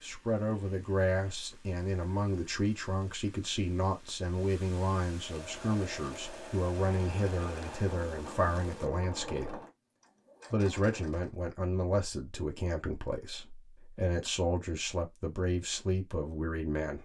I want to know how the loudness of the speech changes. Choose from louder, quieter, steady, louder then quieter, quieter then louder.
steady.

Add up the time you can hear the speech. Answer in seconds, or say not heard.
16 s.